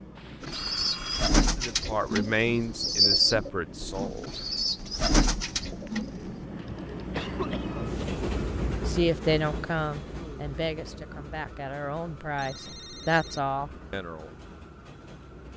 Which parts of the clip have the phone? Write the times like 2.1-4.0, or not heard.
0.1-1.3, 5.8-7.1, 12.3-13.5.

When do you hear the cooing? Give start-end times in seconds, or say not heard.
0.4-6.5.